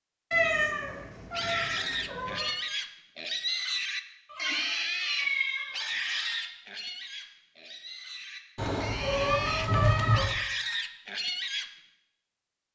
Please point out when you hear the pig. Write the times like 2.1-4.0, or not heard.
1.3-11.7.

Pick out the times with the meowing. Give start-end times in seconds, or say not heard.
0.3-2.5, 4.2-6.5, 8.6-10.3.